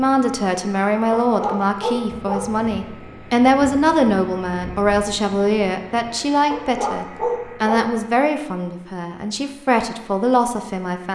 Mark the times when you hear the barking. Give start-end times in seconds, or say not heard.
1.2-2.5, 6.5-8.0.